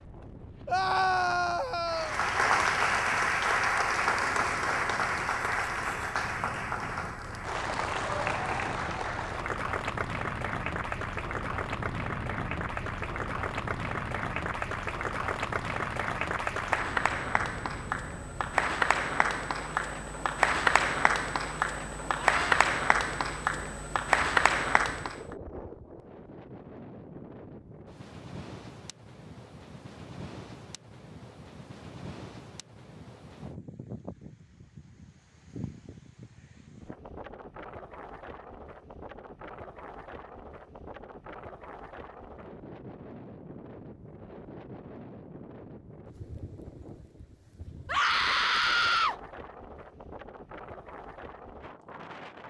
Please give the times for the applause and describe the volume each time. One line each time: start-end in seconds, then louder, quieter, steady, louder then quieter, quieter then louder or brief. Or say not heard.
1.9-25.4 quieter then louder.